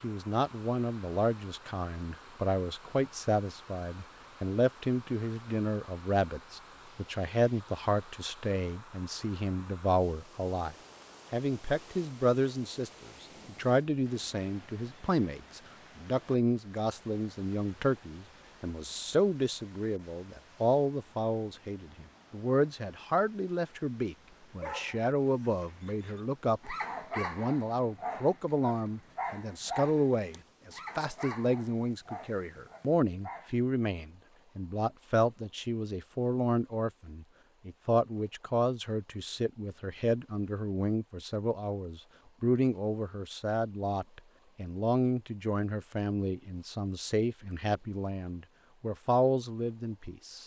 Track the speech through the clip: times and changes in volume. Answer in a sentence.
The speech can be heard from 0.0 to 50.4 s, at a steady volume.